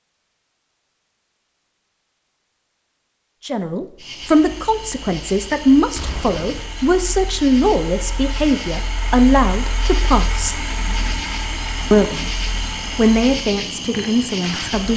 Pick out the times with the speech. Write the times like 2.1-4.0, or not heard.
3.5-10.6, 11.9-12.3, 12.9-14.9.